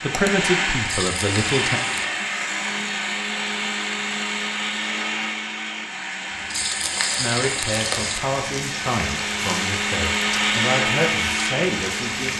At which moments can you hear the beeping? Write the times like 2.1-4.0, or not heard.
not heard.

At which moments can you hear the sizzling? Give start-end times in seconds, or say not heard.
0.0-2.0, 6.3-12.3.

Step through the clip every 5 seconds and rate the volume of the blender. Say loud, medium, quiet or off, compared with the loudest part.
loud, medium, loud.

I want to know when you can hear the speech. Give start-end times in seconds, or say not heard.
0.0-1.8, 7.2-12.3.